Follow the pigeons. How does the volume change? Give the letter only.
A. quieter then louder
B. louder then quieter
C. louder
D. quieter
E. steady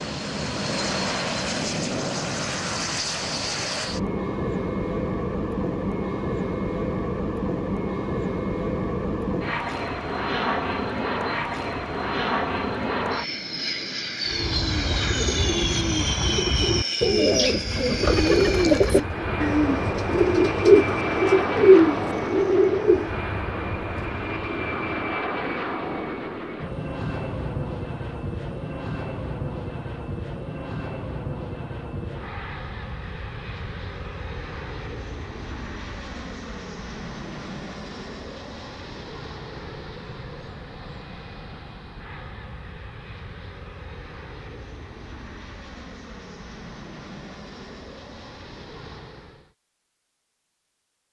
C.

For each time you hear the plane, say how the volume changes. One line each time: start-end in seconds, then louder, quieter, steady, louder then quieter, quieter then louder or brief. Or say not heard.
0.0-49.5 quieter.